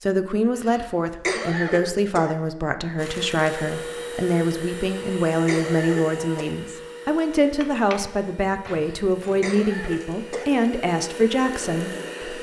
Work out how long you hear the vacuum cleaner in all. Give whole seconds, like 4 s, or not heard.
9 s.